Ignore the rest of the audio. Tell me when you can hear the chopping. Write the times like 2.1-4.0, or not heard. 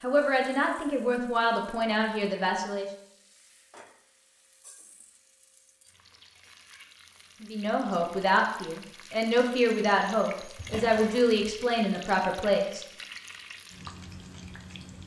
not heard.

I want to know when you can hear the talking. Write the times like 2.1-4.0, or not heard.
0.0-2.9, 7.4-12.8.